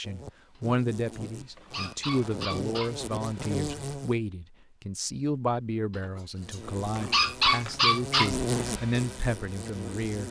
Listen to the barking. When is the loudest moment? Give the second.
7 s.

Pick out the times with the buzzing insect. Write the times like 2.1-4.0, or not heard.
0.0-4.2, 6.3-10.2.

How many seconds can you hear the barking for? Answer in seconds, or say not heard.
5 s.